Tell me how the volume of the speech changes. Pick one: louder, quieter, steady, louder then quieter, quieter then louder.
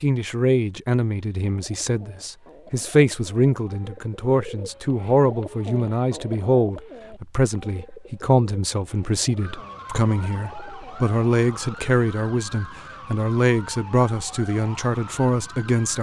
steady.